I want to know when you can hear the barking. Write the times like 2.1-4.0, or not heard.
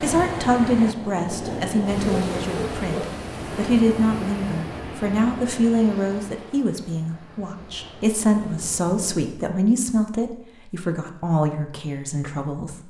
2.0-3.1.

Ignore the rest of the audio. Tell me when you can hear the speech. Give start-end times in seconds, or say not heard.
0.0-12.8.